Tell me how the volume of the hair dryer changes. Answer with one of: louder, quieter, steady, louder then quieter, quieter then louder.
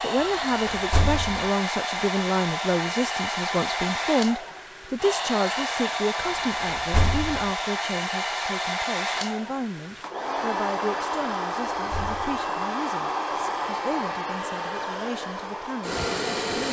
steady.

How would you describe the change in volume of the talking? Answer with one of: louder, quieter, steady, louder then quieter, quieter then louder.
quieter.